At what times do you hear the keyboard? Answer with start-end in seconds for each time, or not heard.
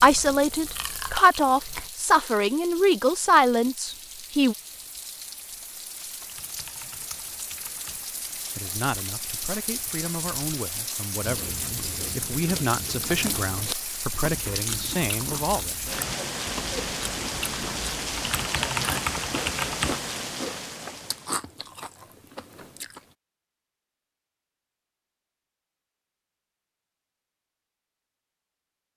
6.2-8.0, 18.1-19.9.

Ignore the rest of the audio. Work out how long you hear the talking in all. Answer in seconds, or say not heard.
12 s.